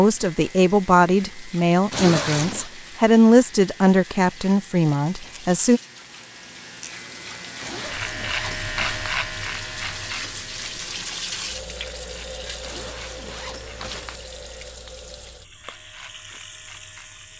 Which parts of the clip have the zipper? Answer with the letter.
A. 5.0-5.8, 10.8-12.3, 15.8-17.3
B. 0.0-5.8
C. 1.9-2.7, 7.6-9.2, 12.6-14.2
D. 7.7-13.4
C.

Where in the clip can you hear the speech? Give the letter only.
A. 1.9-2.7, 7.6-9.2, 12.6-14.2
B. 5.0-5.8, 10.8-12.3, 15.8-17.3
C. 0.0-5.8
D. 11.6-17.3
C.